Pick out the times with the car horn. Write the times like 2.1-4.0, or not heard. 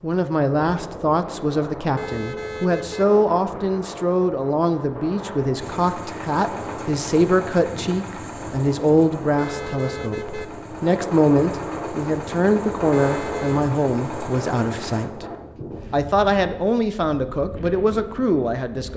1.9-3.0, 9.3-10.4, 12.9-13.7.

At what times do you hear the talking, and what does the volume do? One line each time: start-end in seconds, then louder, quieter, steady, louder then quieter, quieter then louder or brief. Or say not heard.
0.0-15.2 steady
15.9-18.9 brief.